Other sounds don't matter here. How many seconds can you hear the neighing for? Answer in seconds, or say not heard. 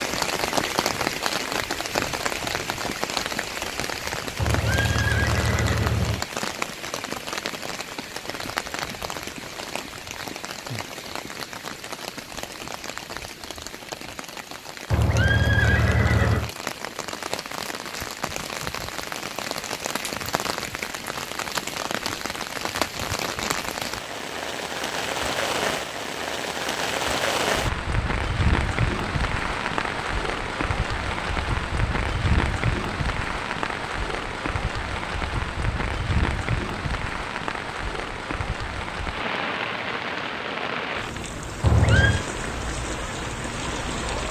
4 s.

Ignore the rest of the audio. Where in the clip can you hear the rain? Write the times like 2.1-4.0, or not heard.
0.0-44.2.